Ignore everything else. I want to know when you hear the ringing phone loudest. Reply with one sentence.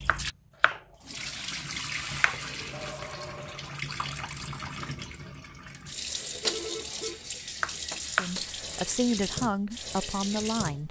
The loudest moment of the ringing phone is at 7 seconds.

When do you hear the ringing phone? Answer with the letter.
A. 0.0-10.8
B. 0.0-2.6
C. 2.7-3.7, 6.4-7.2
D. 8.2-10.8
C.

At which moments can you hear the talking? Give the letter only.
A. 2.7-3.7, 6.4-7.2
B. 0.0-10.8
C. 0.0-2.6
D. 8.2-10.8
D.